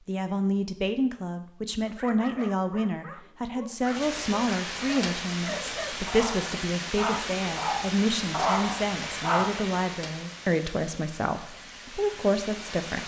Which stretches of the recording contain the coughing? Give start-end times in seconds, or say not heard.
not heard.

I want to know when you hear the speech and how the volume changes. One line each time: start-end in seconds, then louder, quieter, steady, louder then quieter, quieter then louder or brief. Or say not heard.
0.1-13.0 steady.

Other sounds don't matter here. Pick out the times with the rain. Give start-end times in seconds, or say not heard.
3.8-13.0.